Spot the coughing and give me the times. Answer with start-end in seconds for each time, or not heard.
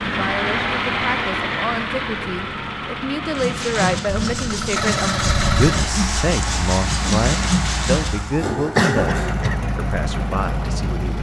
8.6-9.6.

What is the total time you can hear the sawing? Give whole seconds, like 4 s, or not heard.
6 s.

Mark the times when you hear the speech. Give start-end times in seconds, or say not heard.
0.0-11.1.